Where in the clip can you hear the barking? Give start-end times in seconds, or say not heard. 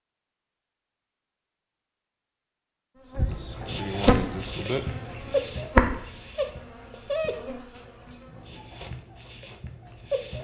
3.3-10.3.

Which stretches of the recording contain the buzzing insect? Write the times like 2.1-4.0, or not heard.
3.0-8.6.